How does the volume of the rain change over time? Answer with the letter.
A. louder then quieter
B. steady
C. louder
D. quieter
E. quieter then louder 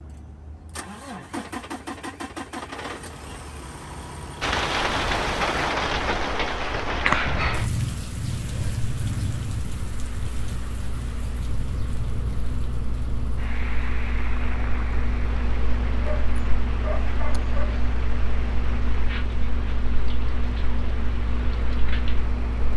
D.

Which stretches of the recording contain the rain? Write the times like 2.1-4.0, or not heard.
4.4-22.7.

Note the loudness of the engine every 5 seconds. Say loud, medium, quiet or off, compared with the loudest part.
loud, medium, loud, loud, loud.